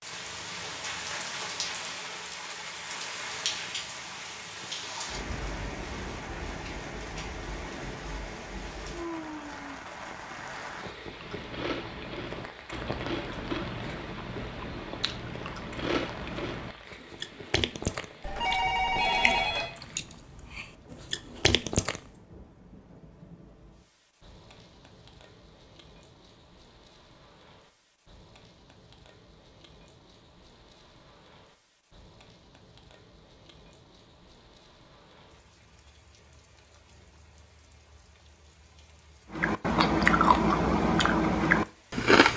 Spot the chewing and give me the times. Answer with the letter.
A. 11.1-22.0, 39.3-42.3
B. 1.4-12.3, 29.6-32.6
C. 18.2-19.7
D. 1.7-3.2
A.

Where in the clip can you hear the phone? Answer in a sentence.
The phone can be heard from 18.2 to 19.7 s.